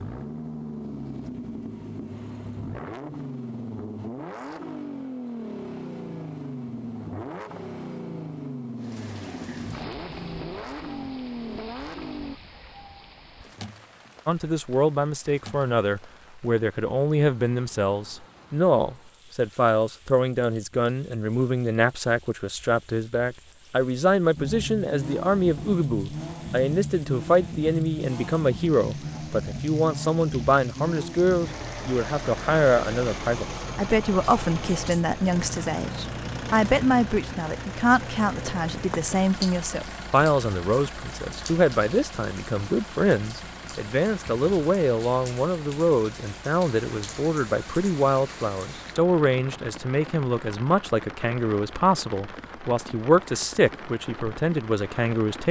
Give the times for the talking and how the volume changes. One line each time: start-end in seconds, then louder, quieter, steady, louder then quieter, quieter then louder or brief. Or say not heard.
14.2-55.4 steady.